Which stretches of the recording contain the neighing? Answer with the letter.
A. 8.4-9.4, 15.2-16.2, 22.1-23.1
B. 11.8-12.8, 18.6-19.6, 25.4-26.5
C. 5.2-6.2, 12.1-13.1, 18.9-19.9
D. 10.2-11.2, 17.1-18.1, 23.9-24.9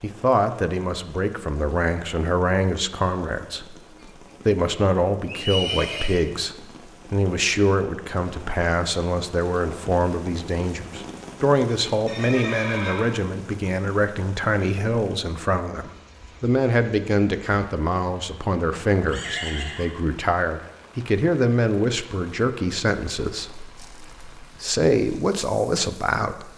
C.